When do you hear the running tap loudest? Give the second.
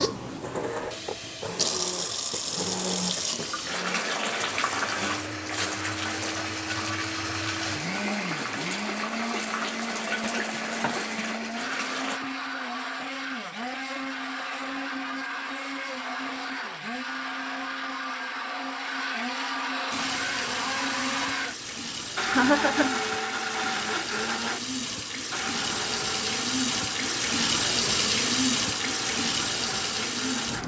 28 s.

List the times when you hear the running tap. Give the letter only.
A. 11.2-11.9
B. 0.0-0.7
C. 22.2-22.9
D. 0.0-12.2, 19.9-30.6
D.